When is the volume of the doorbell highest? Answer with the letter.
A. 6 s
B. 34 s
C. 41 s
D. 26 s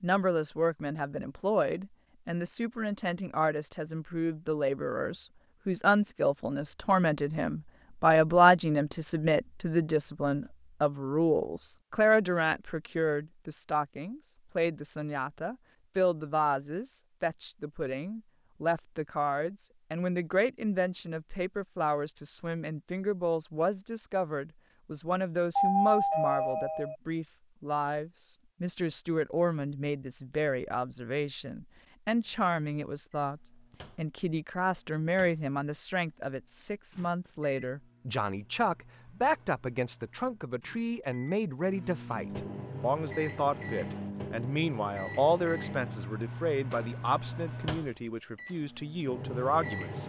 D.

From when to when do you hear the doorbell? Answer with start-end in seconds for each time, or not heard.
25.6-26.9.